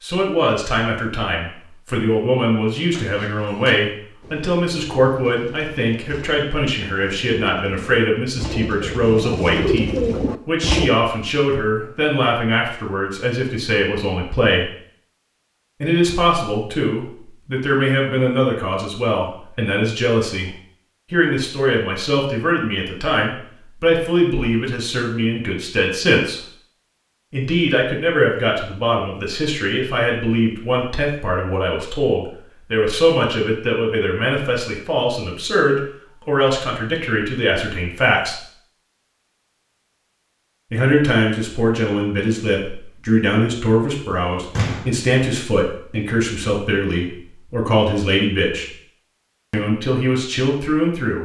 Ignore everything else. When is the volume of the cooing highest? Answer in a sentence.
The loudest moment of the cooing is at 10 seconds.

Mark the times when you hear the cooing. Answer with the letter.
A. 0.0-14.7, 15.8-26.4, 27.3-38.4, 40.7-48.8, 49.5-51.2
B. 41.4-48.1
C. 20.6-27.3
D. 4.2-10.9
D.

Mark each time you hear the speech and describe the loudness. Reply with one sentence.
You can hear the speech from 0.0 to 14.7 s, at a steady volume; from 15.8 to 26.4 s, at a steady volume; from 27.3 to 38.4 s, at a steady volume; from 40.7 to 48.8 s, at a steady volume; and briefly from 49.5 to 51.2 s.